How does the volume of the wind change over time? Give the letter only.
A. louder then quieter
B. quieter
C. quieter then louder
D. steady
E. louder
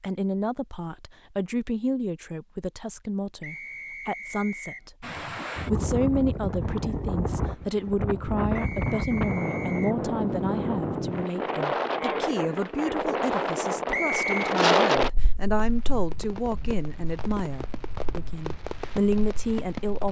A.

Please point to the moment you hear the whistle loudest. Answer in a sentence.
The volume of the whistle peaks at 14 seconds.